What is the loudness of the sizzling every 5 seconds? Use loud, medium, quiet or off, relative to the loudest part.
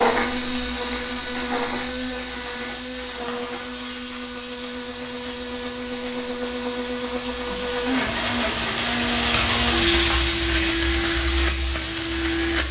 medium, loud, loud.